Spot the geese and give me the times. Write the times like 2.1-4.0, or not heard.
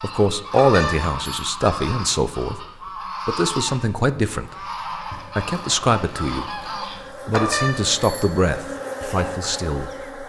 0.0-7.0.